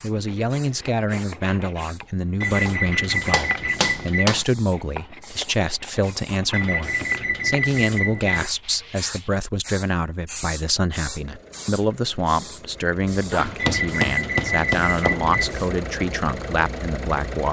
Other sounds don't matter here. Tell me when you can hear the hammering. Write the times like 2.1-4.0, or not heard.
2.6-4.5, 13.3-15.3.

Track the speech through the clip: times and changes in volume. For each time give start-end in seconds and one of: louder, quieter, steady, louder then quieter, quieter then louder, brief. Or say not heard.
0.0-17.4 steady.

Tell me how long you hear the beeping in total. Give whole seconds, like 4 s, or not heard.
6 s.